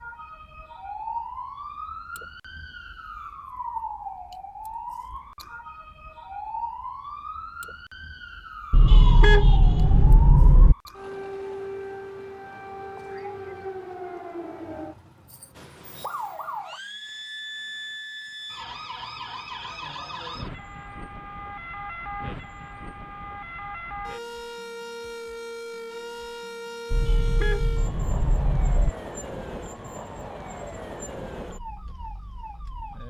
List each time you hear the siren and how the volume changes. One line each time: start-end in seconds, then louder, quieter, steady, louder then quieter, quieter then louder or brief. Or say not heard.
0.0-33.0 steady.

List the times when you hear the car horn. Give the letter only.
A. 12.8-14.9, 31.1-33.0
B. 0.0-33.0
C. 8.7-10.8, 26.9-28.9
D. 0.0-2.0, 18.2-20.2
C.